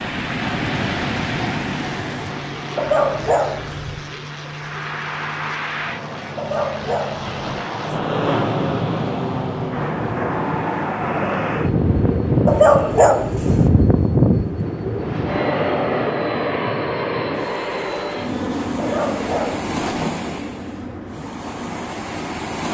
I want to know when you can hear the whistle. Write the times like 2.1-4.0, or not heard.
not heard.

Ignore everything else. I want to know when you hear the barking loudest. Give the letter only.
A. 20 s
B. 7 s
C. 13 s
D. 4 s
C.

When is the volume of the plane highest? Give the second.
14 s.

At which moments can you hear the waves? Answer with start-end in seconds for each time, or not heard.
0.0-22.6.